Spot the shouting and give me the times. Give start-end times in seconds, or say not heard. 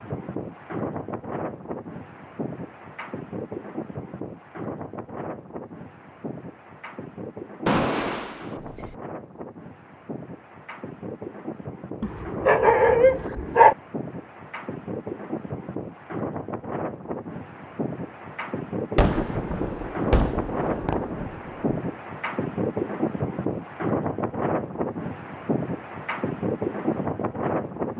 not heard.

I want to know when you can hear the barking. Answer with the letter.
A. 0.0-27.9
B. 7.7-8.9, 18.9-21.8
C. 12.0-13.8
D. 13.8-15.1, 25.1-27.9
C.